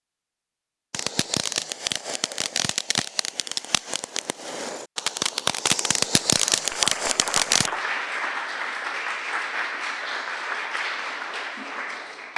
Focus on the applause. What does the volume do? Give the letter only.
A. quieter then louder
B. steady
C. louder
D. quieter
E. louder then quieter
B.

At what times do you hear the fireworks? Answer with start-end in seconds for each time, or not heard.
0.9-7.7.